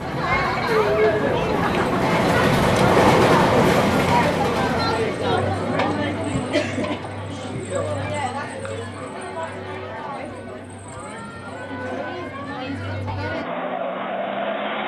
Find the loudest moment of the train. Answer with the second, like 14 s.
3 s.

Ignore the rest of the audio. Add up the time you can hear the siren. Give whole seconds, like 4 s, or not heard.
not heard.